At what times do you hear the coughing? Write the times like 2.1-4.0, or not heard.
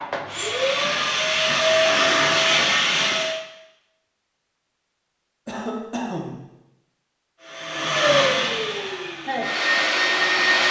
1.8-2.3, 5.5-6.4.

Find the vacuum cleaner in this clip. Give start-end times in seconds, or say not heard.
0.0-3.4, 7.4-10.6.